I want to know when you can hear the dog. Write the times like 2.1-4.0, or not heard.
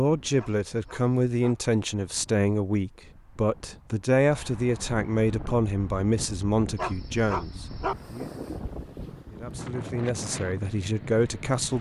0.3-1.6, 6.8-8.0.